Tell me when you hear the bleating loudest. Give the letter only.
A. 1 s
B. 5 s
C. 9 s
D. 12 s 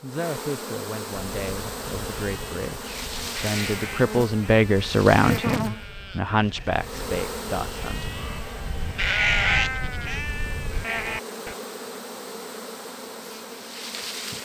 C.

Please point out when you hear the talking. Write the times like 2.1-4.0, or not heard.
0.0-8.2.